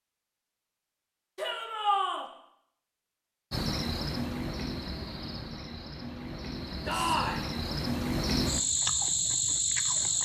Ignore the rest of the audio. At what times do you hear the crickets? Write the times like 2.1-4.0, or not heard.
3.5-10.1.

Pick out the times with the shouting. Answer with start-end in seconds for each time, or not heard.
1.4-2.2, 6.8-7.5.